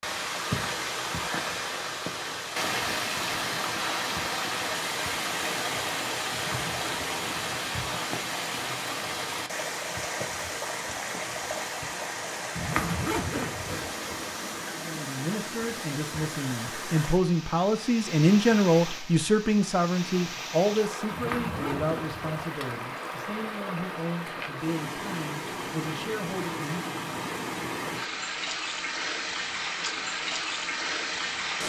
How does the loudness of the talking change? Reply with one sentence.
The loudness of the talking goes up, then down.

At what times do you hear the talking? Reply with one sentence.
You can hear the talking from 14.8 to 27.1 s.